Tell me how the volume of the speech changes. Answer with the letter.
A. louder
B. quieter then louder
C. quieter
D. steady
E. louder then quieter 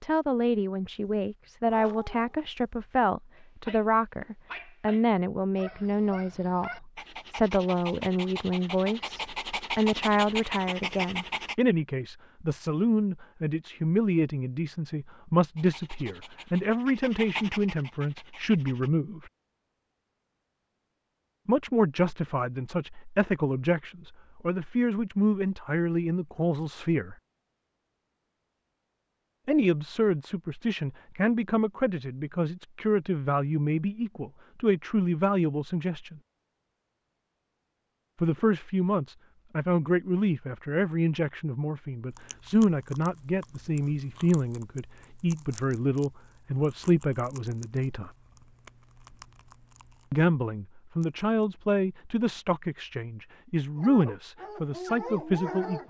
D.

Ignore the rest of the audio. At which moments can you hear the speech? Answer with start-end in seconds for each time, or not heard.
0.0-19.3, 21.4-27.1, 29.4-36.2, 38.2-48.1, 50.1-55.8.